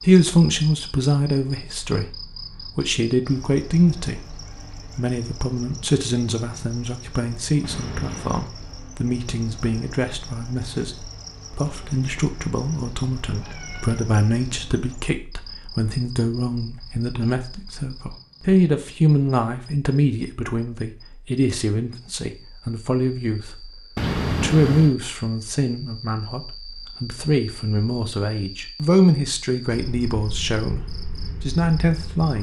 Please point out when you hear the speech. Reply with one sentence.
The speech can be heard from 0.0 to 32.3 s.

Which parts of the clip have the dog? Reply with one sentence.
You can't hear the dog here.